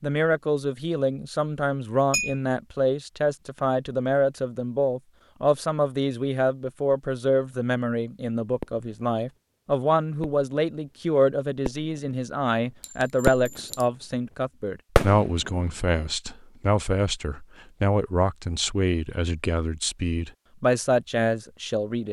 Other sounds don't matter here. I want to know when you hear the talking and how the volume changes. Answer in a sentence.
You can hear the talking from 0.0 to 22.0 s, at a steady volume.